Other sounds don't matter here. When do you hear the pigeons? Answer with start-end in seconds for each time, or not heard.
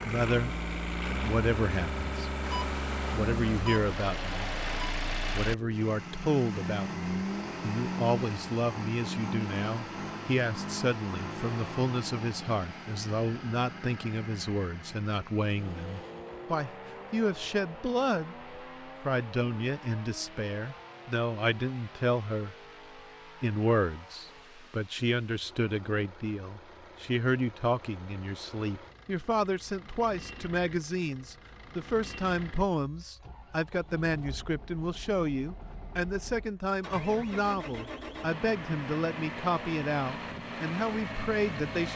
not heard.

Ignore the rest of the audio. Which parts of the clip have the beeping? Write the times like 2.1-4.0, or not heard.
2.4-5.0.